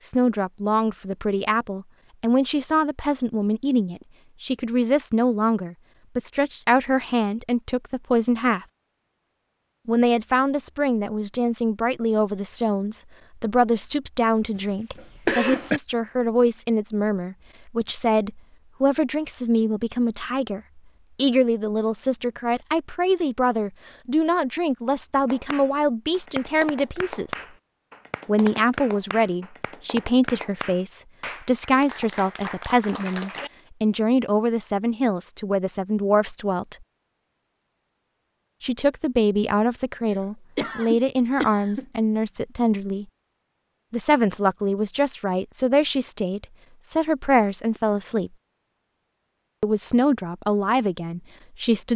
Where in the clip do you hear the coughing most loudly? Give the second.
15 s.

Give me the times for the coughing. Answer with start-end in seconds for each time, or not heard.
14.6-15.8, 40.1-41.9.